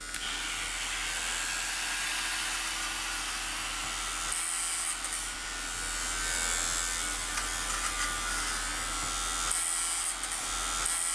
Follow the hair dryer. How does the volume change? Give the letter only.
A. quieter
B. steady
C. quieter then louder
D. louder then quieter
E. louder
A.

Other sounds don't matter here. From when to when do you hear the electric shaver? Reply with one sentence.
The electric shaver can be heard from 0.0 to 11.1 s.